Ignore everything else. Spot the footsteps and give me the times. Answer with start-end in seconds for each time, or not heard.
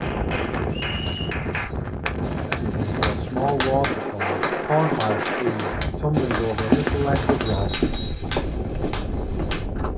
0.0-9.9.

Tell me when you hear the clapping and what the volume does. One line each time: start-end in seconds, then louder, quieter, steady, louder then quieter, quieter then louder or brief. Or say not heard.
0.0-9.7 louder then quieter.